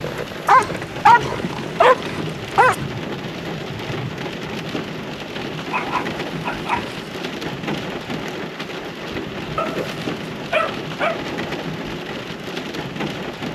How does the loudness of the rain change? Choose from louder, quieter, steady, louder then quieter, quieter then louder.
steady.